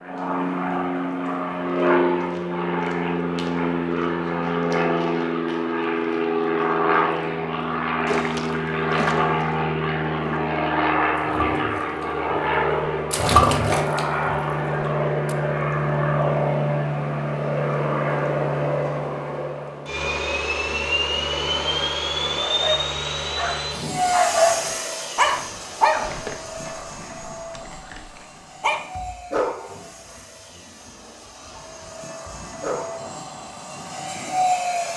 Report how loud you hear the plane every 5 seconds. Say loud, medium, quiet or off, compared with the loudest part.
loud, loud, loud, loud, loud, quiet, medium.